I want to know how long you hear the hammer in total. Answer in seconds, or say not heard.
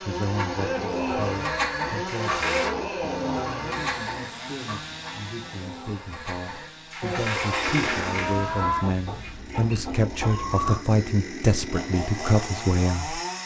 not heard.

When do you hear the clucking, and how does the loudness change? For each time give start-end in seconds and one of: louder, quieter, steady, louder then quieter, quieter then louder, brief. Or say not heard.
0.2-10.8 quieter then louder.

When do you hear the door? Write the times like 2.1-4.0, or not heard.
2.0-2.7, 6.9-8.8.